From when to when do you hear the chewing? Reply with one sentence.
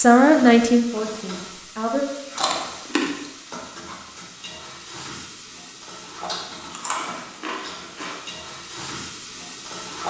The chewing can be heard from 2.4 to 3.3 s and from 6.2 to 8.2 s.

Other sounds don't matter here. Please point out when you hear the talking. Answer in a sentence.
You can hear the talking from 0.0 to 2.0 s.